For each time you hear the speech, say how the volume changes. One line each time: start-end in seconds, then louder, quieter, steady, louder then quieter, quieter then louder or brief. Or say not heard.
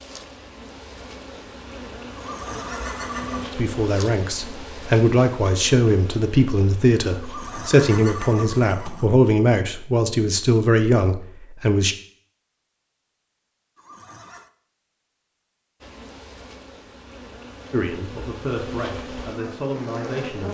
3.5-11.9 steady
17.7-20.4 brief.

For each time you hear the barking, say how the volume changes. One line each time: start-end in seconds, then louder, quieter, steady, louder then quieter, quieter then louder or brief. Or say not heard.
not heard.